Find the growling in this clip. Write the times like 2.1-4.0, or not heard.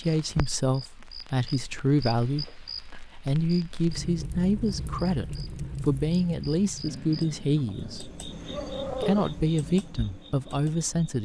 6.8-9.3.